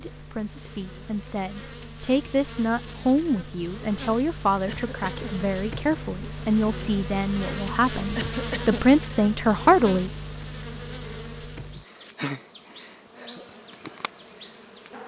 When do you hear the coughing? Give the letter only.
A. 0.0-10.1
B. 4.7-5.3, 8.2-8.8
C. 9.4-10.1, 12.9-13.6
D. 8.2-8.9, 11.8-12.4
B.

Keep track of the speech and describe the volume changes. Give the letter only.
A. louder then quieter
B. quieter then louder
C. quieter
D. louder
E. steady
D.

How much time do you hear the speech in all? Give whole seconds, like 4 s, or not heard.
10 s.